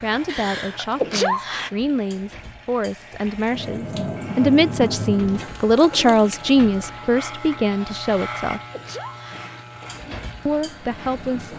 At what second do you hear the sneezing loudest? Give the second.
1 s.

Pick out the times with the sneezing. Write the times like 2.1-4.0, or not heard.
0.2-1.7, 8.1-9.7.